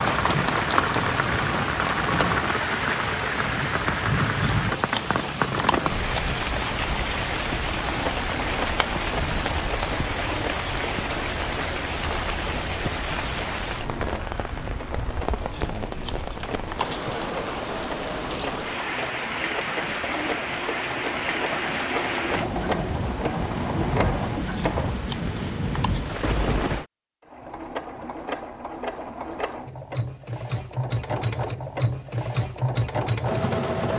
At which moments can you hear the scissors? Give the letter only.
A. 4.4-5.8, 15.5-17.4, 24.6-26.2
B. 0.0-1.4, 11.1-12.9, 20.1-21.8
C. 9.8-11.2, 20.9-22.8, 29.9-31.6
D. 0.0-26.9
A.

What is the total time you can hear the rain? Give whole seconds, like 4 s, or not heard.
27 s.